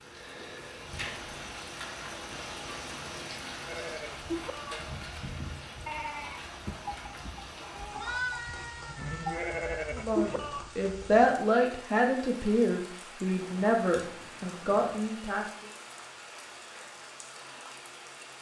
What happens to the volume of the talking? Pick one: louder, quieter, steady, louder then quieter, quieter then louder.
quieter.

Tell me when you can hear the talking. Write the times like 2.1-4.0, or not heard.
9.9-15.7.